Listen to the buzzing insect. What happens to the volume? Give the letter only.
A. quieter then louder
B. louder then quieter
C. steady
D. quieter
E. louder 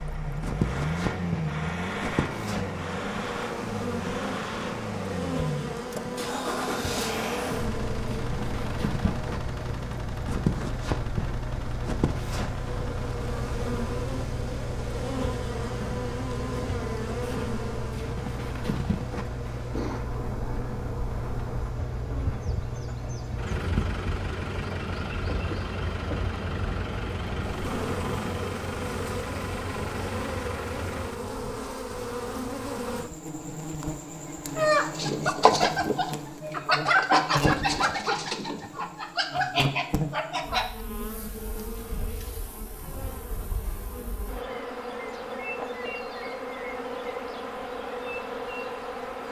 C.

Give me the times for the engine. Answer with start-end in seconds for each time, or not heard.
0.0-31.2.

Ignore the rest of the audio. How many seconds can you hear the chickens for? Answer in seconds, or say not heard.
6 s.